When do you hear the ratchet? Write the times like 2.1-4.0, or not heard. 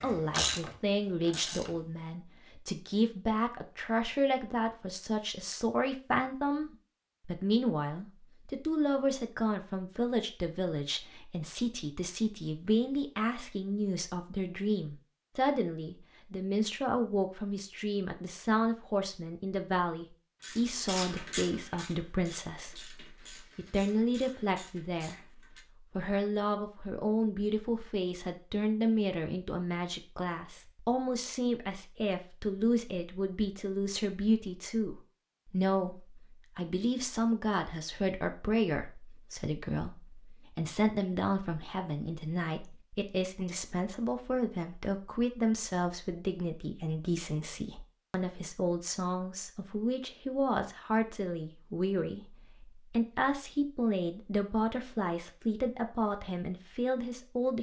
0.0-1.9, 20.4-25.6.